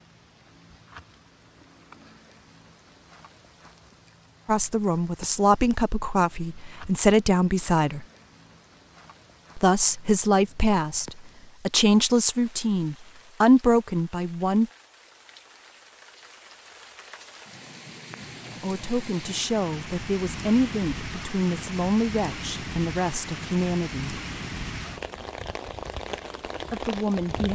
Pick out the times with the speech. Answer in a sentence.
The speech can be heard from 4.5 to 8.1 s, from 9.6 to 14.7 s, from 18.6 to 24.2 s and from 26.7 to 27.4 s.